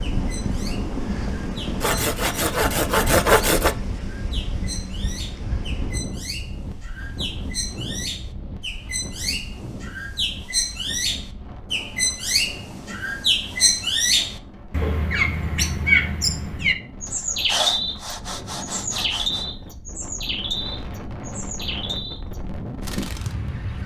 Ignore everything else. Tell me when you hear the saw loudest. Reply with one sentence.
The loudest moment of the saw is at 3 seconds.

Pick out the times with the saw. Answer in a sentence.
You can hear the saw from 1.8 to 3.8 s and from 17.1 to 19.4 s.